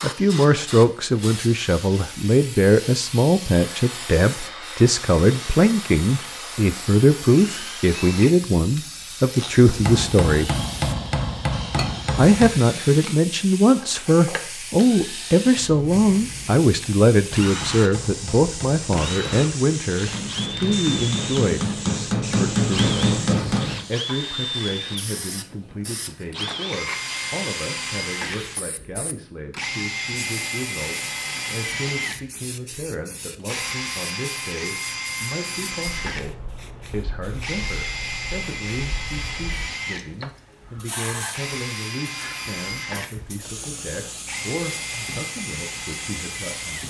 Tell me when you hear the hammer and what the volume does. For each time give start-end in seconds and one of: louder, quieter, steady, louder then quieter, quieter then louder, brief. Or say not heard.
9.7-12.5 brief
17.4-24.1 louder.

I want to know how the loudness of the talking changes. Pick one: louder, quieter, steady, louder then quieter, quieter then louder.
quieter.